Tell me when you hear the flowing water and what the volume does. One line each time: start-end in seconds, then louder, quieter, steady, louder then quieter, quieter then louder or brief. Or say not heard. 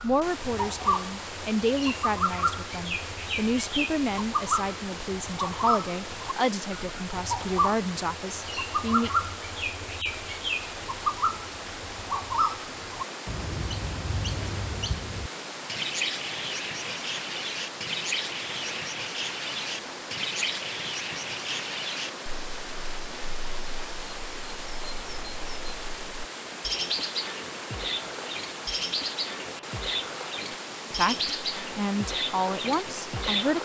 0.0-33.6 steady.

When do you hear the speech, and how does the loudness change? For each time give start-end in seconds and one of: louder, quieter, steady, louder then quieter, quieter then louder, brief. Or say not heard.
0.0-9.1 steady
30.9-33.6 brief.